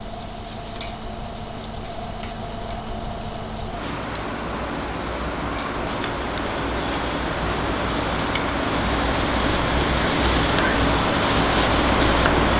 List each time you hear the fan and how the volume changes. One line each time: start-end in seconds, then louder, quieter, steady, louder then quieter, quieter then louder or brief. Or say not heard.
0.0-12.5 louder.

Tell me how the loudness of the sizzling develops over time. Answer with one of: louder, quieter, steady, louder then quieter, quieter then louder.
louder.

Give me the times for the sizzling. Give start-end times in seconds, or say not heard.
0.0-12.5.